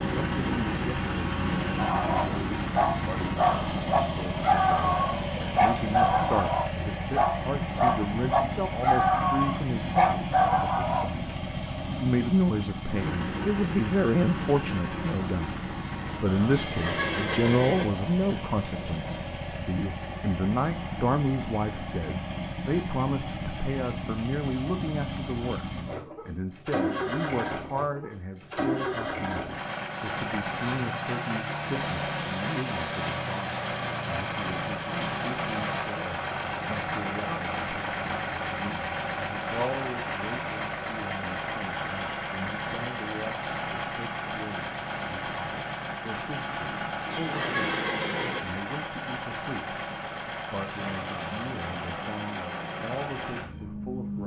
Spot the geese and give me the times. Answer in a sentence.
The geese can't be heard in this clip.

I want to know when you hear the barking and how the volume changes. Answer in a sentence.
The barking can be heard from 1.8 to 11.2 s, at a steady volume.